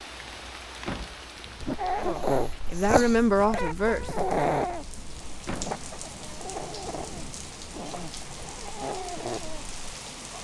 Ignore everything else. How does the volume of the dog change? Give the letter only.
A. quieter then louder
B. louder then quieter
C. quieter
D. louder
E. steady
C.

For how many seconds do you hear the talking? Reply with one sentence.
You can hear the talking for 2 seconds altogether.